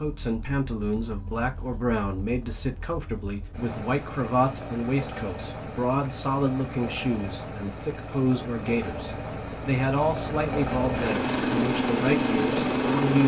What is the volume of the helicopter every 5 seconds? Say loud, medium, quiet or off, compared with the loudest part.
quiet, medium, loud.